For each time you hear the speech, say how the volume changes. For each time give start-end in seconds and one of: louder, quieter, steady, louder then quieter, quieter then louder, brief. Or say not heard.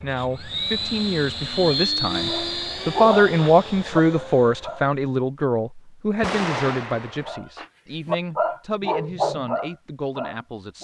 0.0-10.7 louder then quieter.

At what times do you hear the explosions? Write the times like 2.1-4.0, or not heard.
6.2-7.3.